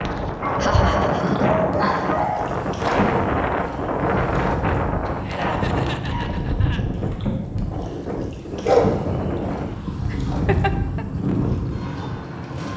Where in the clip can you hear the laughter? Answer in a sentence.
The laughter can be heard from 0.1 to 2.3 s, from 5.2 to 6.8 s and from 10.1 to 11.1 s.